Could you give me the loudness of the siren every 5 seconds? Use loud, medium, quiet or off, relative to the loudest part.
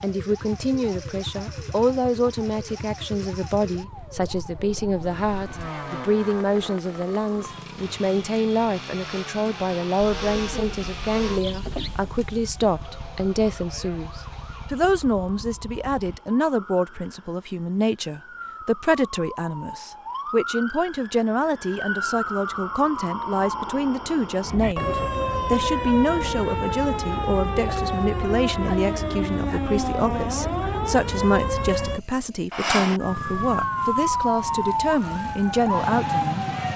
quiet, quiet, quiet, quiet, medium, loud, loud, loud.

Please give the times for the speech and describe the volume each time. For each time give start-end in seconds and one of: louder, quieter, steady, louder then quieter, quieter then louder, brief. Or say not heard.
0.0-36.5 steady.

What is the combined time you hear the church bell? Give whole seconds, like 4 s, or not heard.
not heard.